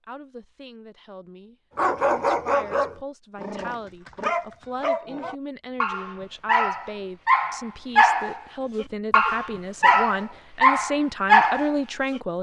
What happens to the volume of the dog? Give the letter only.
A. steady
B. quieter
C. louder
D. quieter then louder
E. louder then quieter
C.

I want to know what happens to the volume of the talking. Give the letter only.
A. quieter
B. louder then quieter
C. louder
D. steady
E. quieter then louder
C.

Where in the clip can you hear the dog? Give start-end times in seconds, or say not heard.
1.8-12.2.